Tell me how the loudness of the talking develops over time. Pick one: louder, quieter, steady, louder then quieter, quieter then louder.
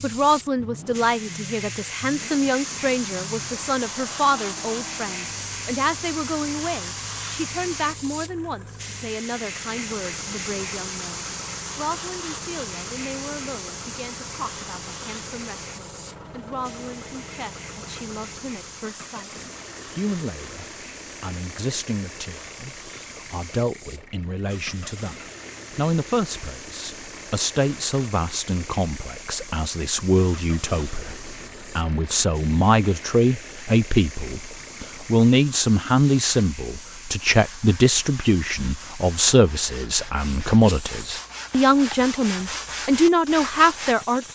quieter then louder.